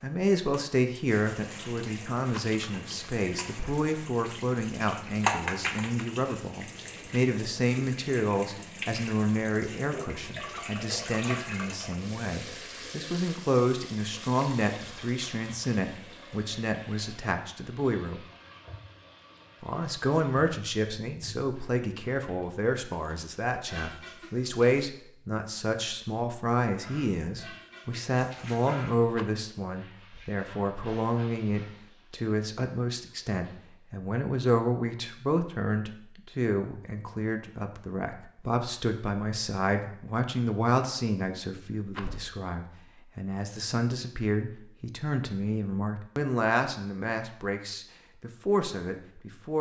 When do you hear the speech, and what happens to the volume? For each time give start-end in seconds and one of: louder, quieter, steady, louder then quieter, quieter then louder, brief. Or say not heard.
0.0-18.2 steady
19.6-49.5 steady.